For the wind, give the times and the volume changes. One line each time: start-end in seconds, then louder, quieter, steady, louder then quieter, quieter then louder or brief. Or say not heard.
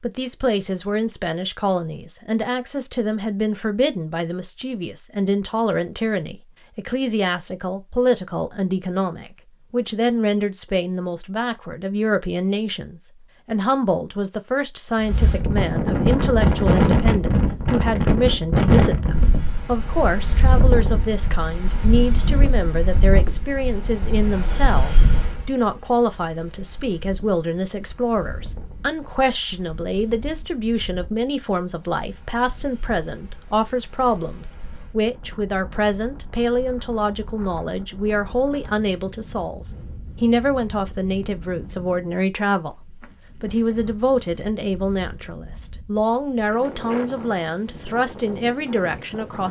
15.0-49.4 quieter then louder.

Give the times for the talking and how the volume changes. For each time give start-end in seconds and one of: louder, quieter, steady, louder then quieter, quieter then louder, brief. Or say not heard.
0.0-49.4 steady.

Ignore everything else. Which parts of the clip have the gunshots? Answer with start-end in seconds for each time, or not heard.
not heard.